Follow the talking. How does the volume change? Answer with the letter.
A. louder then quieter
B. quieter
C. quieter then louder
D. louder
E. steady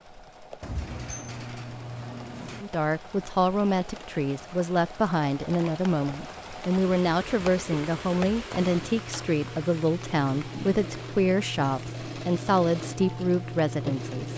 E.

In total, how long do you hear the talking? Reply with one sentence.
You can hear the talking for 12 seconds altogether.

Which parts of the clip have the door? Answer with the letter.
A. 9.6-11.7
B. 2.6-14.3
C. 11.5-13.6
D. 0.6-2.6
D.